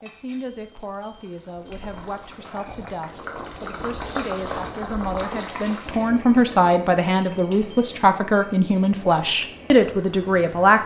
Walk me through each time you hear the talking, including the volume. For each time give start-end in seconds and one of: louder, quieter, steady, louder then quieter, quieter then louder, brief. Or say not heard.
0.0-10.8 louder.